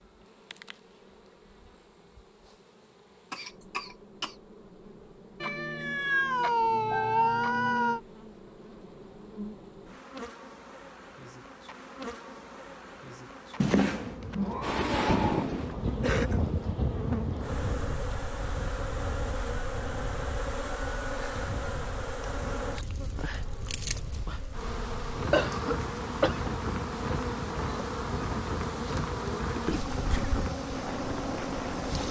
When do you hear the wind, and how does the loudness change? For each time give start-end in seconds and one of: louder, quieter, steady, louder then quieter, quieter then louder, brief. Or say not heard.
14.6-32.0 quieter then louder.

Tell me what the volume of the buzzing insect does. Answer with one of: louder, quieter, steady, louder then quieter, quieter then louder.
louder.